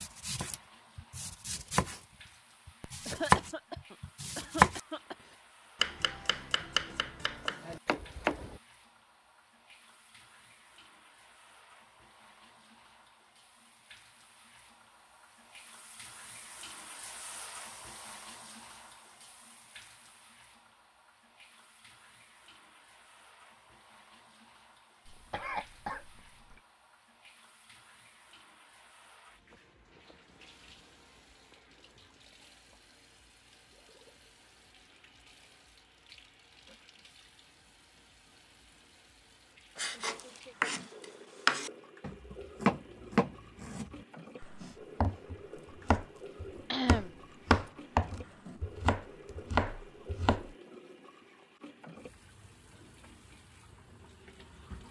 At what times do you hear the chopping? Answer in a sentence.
You can hear the chopping from 0.0 to 2.0 s, from 2.6 to 4.8 s, from 5.8 to 8.6 s and from 39.8 to 50.5 s.